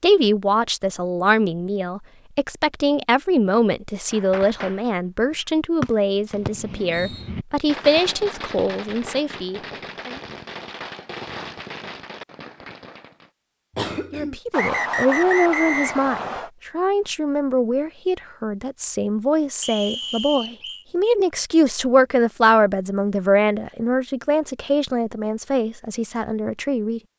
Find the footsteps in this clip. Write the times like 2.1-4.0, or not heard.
not heard.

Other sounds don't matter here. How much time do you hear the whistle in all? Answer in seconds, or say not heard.
4 s.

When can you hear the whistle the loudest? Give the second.
15 s.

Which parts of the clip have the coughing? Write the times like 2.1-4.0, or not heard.
13.8-14.3.